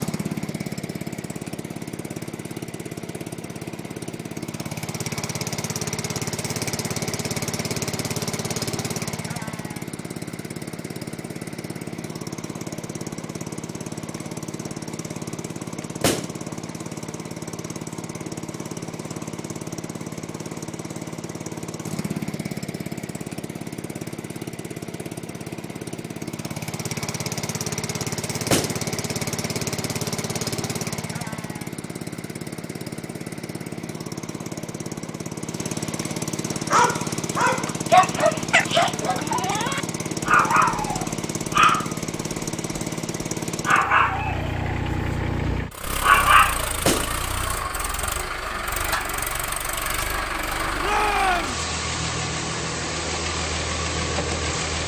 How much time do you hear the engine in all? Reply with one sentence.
You can hear the engine for 55 seconds altogether.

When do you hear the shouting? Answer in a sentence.
The shouting can be heard from 50.8 to 51.6 s.